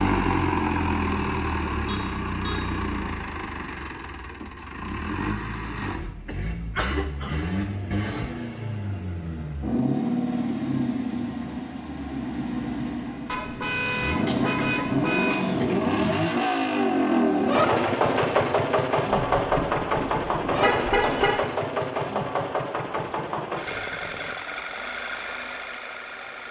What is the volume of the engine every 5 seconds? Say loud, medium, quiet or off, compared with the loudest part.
medium, medium, medium, loud, medium, quiet.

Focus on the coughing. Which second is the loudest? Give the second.
7 s.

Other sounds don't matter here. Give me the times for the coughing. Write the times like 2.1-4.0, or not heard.
6.2-7.5, 14.2-15.8.